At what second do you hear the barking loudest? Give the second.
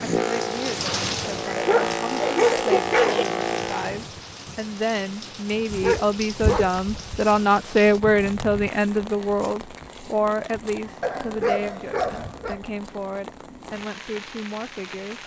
3 s.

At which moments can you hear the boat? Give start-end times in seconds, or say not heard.
0.0-4.1.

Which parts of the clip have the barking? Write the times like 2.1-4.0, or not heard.
1.4-3.2, 5.7-7.5, 11.0-12.6.